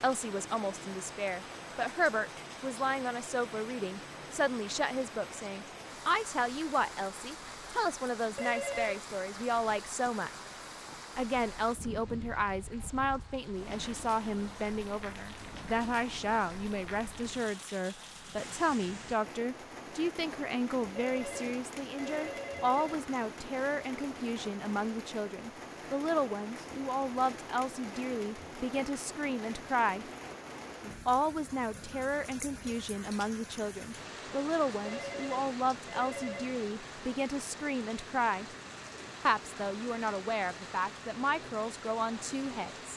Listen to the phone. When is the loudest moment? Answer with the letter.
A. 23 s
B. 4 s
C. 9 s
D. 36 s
C.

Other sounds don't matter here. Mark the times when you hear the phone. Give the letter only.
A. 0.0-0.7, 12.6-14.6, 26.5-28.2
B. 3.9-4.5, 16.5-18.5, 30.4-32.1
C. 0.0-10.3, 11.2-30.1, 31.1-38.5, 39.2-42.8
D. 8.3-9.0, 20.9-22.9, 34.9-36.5
D.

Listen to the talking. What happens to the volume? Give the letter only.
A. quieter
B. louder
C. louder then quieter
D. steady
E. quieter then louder
D.